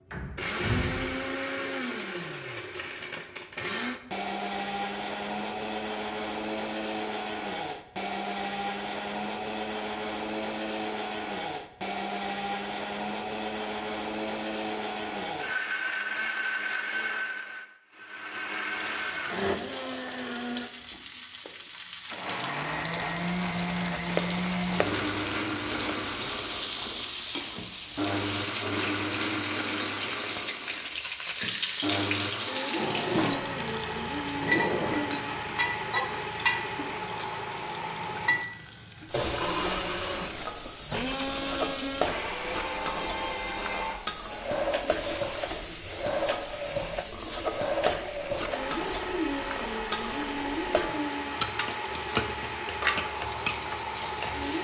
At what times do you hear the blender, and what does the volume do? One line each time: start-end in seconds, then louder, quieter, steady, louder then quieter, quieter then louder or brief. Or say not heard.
0.3-54.5 steady.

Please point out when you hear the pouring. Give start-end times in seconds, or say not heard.
not heard.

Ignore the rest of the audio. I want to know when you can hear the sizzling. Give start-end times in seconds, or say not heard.
18.8-54.5.